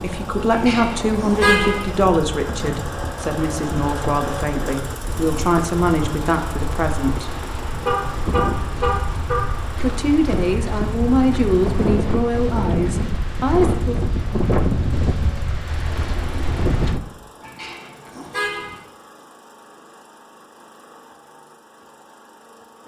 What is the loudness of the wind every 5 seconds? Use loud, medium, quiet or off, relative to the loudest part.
medium, medium, loud, loud, off.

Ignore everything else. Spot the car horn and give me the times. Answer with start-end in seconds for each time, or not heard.
0.5-1.9, 7.8-9.4, 17.4-18.8.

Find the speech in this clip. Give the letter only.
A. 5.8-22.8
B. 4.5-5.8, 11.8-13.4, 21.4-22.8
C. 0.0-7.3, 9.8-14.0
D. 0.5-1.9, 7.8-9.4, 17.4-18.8
C.